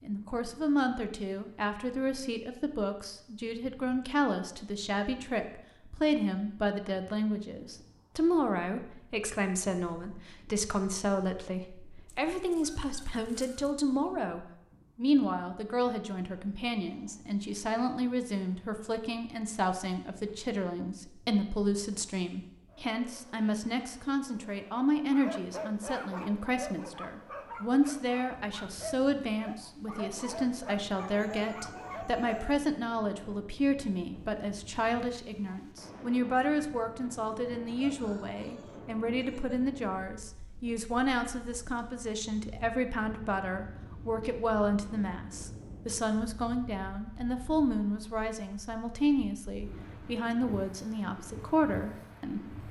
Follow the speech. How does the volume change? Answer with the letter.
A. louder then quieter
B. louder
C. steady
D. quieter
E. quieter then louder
C.